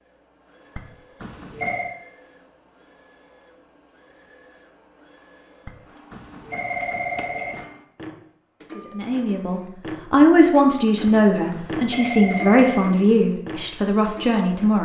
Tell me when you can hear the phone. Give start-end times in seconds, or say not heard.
0.8-1.9, 5.7-7.7, 11.1-12.9.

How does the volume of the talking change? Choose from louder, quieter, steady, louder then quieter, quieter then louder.
louder then quieter.